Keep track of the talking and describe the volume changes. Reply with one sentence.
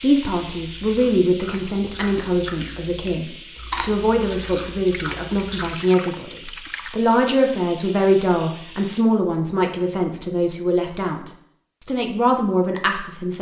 The loudness of the talking stays about the same.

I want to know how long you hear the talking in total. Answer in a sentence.
You can hear the talking for 13 seconds altogether.